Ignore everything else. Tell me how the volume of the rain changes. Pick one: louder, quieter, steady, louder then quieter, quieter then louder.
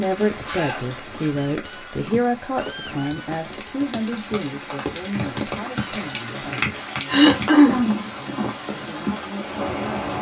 louder.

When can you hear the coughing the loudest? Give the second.
8 s.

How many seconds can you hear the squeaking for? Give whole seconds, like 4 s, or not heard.
4 s.